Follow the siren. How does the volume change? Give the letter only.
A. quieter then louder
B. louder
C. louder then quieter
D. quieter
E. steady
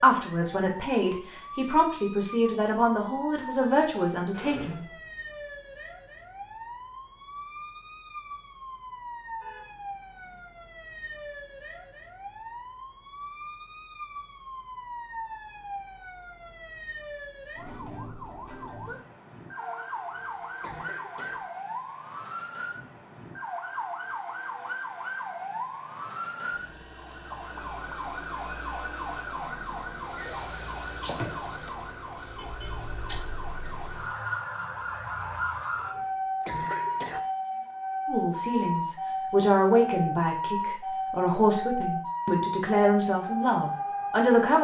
B.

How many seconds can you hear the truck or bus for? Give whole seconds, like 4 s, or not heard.
not heard.